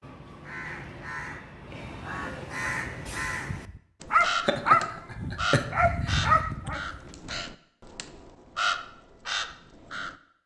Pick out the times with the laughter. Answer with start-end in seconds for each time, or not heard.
4.5-6.2.